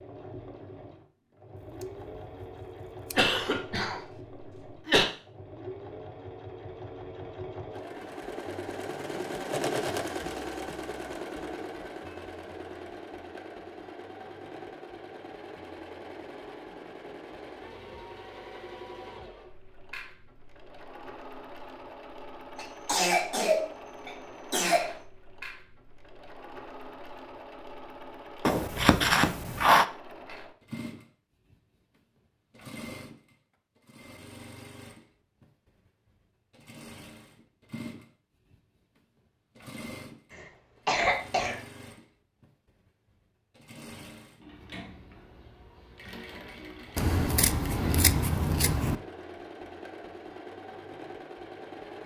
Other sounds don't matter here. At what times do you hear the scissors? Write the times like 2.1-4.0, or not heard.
1.6-3.2, 28.4-29.9, 47.0-49.0.